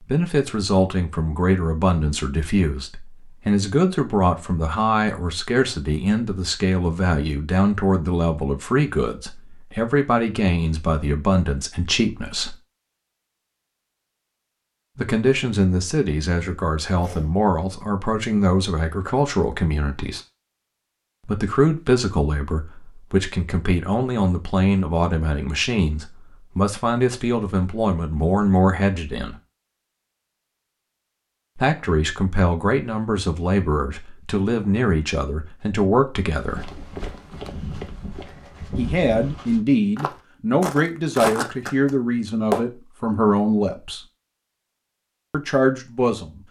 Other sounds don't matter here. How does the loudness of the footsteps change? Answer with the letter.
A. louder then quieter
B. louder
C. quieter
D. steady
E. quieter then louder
B.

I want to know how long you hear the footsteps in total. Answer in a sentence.
The footsteps can be heard for 6 seconds in total.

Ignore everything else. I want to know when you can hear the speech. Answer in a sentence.
The speech can be heard from 0.0 to 12.6 s, from 14.9 to 20.2 s, from 21.2 to 29.4 s, from 31.6 to 36.6 s, from 38.8 to 44.0 s and from 45.3 to 46.4 s.